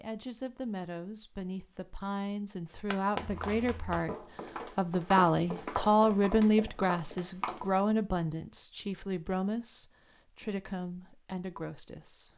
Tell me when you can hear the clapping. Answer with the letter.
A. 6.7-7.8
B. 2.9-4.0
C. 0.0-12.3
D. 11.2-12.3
B.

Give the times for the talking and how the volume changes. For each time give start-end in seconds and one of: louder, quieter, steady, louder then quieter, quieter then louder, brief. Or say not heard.
0.0-12.3 louder then quieter.